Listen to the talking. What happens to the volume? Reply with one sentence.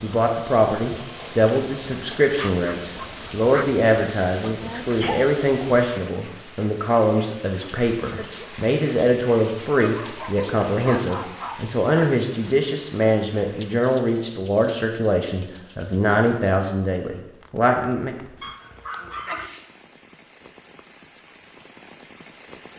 The loudness of the talking stays about the same.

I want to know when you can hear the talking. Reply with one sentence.
You can hear the talking from 0.0 to 18.1 s.